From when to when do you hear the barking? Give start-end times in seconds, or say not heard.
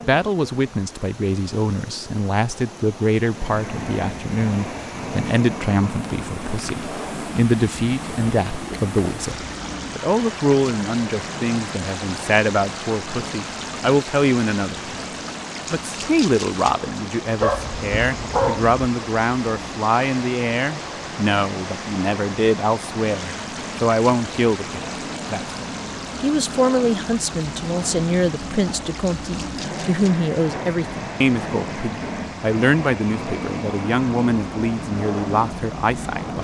17.4-18.8.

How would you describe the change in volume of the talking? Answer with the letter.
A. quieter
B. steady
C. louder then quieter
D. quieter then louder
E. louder
B.